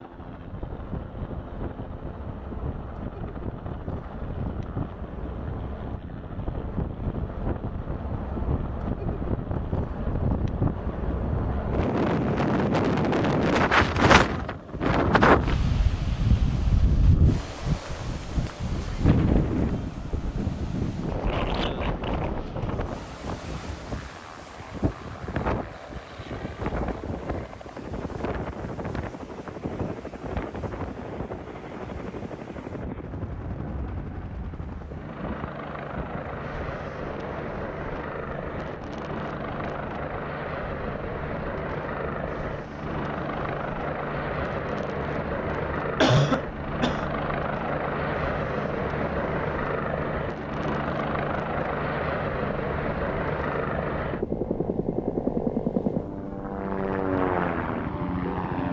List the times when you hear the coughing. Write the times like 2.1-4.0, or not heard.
46.0-47.0.